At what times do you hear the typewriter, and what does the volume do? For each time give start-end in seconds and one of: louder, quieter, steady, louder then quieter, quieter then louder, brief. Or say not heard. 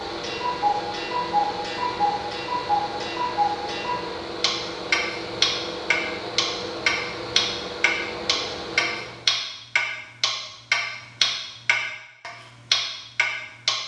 not heard.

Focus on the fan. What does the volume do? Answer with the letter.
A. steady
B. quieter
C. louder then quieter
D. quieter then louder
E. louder
A.